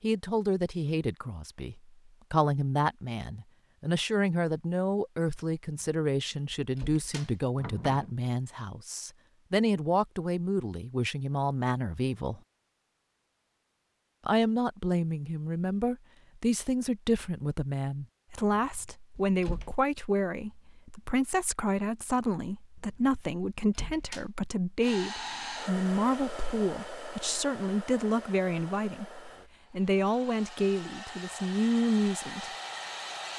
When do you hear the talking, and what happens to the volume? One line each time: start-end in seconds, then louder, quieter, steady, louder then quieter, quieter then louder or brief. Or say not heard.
0.0-12.4 steady
14.2-32.5 steady.